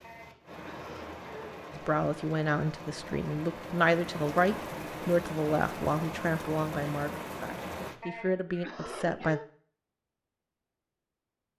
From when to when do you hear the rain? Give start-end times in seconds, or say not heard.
0.0-8.0.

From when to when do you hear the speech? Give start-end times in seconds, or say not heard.
1.7-9.4.